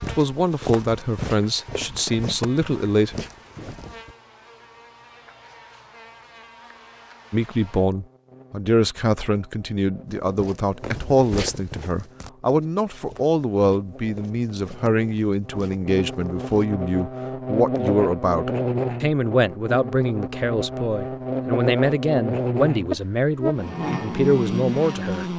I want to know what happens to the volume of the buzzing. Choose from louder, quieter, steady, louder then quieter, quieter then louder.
louder.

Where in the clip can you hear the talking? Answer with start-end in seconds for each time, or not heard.
0.0-3.1, 7.3-25.2.